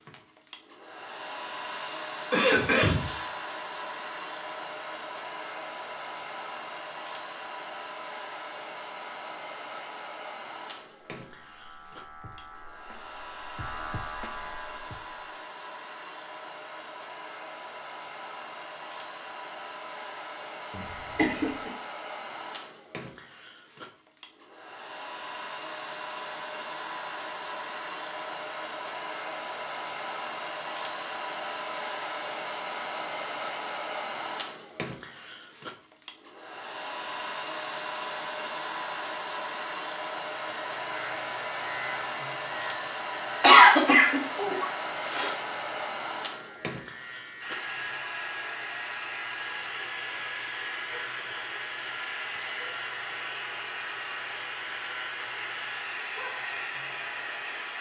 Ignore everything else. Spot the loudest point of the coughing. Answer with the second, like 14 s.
44 s.